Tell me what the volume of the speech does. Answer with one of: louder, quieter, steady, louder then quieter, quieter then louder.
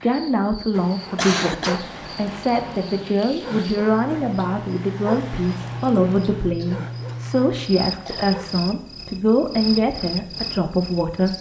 steady.